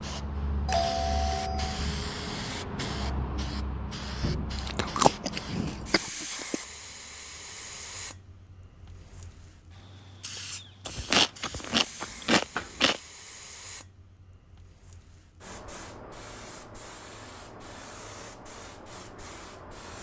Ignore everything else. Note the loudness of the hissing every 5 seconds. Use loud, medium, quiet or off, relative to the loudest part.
loud, medium, medium, medium.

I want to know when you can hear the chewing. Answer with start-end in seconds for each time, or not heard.
4.5-6.6, 10.8-13.0.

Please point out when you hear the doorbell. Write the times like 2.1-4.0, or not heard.
0.7-1.9.